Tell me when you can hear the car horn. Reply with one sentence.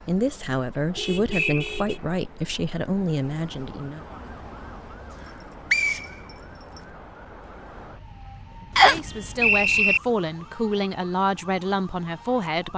You can hear the car horn from 0.9 to 2.0 s.